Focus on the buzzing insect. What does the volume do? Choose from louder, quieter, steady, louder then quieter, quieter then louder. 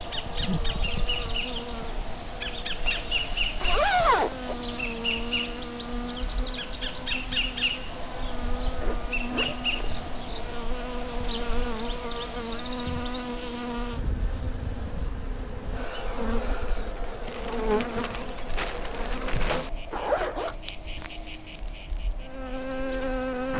steady.